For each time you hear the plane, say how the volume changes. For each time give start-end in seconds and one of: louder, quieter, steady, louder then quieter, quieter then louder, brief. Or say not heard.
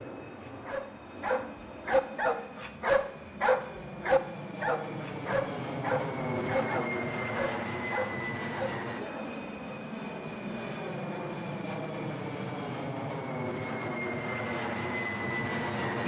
0.0-16.0 louder.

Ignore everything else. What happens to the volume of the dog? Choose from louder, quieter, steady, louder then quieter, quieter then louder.
quieter.